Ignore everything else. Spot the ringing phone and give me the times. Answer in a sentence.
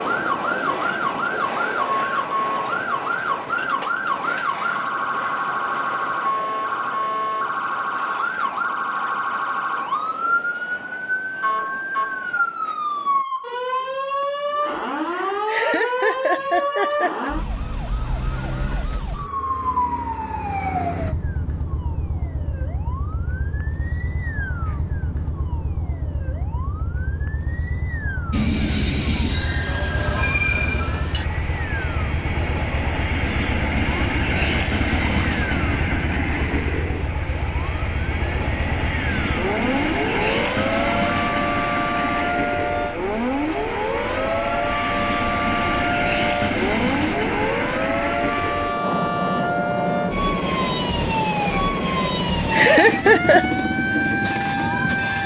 You can't hear the ringing phone here.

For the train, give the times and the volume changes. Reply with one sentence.
The train can be heard from 0.0 to 13.2 s, getting quieter; and from 28.3 to 55.2 s, at a steady volume.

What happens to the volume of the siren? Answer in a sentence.
The volume of the siren goes down, then up.